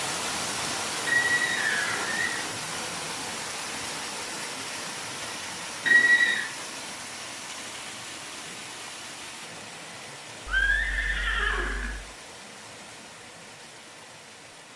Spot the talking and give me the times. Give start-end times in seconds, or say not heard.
not heard.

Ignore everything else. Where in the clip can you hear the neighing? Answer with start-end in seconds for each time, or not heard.
1.1-2.5, 5.8-6.5, 10.4-12.0.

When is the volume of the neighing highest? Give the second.
6 s.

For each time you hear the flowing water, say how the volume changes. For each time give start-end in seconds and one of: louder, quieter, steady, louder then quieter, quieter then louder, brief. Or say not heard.
0.0-14.7 quieter.